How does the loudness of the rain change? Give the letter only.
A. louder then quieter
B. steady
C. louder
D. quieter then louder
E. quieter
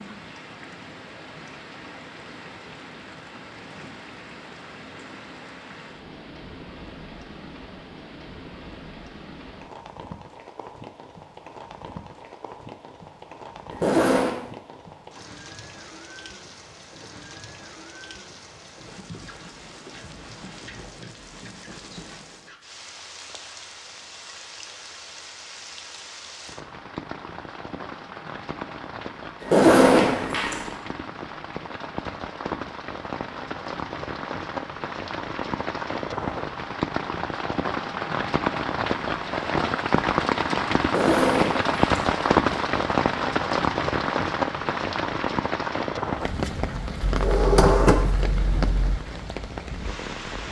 C.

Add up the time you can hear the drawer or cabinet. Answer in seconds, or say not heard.
2 s.